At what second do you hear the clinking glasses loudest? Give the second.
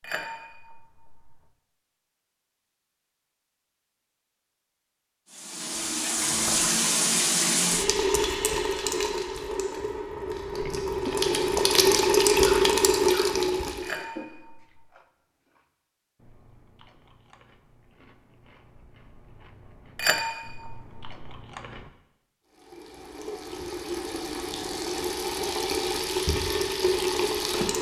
20 s.